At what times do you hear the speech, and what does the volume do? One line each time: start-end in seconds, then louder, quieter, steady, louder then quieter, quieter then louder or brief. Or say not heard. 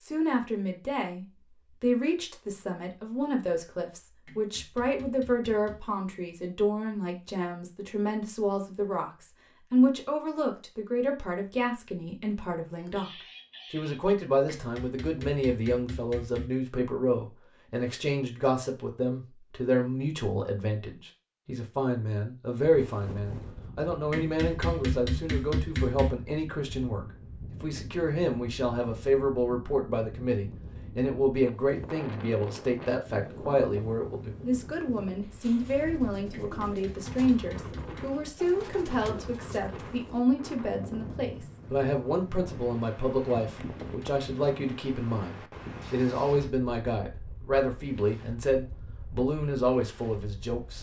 0.0-50.7 steady.